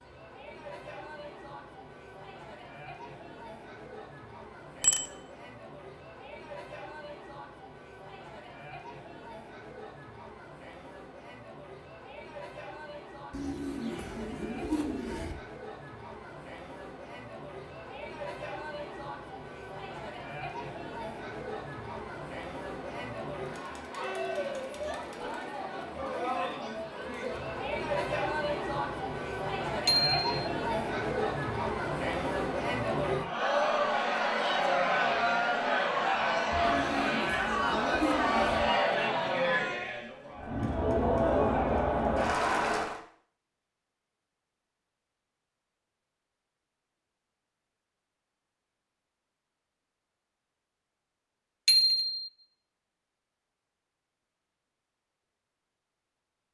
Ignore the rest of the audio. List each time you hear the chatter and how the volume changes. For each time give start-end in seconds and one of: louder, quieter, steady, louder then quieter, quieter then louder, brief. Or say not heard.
0.0-43.0 louder.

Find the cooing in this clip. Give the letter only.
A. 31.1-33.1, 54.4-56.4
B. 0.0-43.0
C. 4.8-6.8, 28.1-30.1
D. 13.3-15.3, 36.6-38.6
D.